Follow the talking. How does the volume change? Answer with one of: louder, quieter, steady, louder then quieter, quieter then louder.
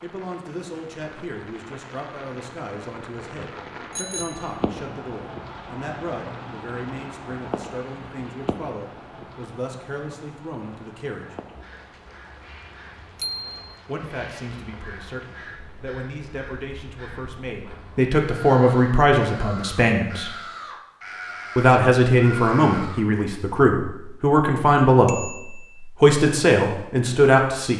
louder.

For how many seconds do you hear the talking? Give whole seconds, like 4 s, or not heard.
24 s.